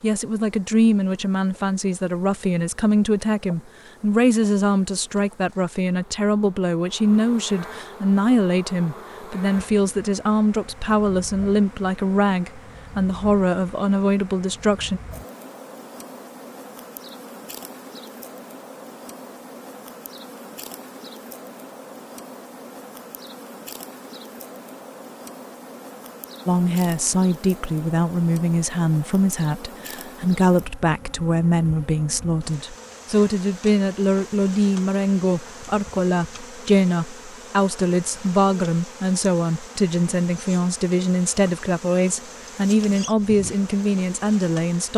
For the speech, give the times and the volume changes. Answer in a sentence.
The speech can be heard from 0.0 to 15.0 s, at a steady volume; and from 26.4 to 44.9 s, at a steady volume.